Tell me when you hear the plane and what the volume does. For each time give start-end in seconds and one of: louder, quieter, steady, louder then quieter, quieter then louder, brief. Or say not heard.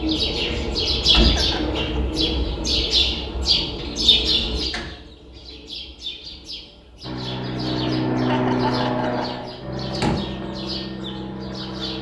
7.0-11.9 quieter.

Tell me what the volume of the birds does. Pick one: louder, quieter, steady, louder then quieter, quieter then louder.
quieter.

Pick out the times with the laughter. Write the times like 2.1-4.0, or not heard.
1.2-2.0, 8.2-9.3.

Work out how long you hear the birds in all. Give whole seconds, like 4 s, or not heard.
12 s.